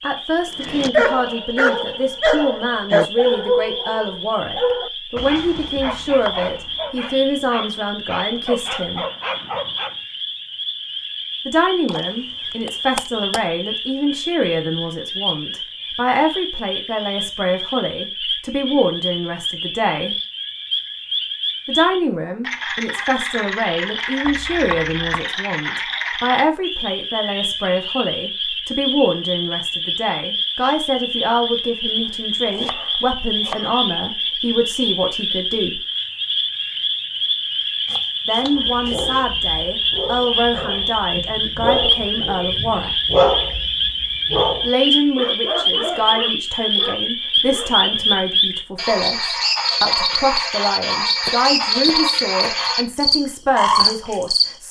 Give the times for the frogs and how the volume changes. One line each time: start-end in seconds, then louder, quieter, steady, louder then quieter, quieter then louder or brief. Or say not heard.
0.0-54.5 louder.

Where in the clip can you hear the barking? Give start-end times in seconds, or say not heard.
0.5-9.9, 38.4-47.9.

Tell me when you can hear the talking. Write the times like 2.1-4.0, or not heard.
0.0-9.1, 11.4-20.1, 21.6-35.8, 38.2-43.0, 44.6-54.6.